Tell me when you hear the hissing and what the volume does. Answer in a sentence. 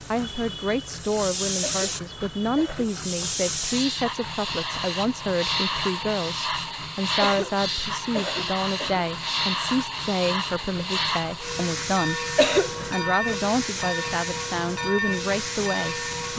The hissing can be heard from 0.0 to 16.3 s, at a steady volume.